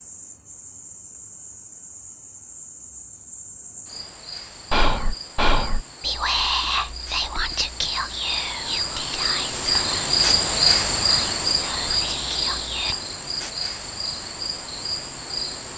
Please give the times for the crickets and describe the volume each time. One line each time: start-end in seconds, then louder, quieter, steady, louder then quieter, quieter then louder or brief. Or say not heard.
0.0-15.7 louder then quieter.